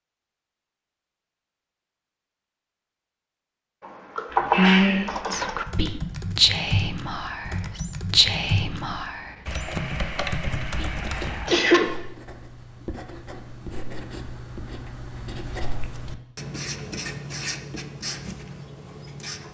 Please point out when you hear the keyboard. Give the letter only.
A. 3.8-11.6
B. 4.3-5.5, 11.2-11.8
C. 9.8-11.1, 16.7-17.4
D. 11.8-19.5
A.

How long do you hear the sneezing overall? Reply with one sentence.
The sneezing can be heard for 2 seconds in total.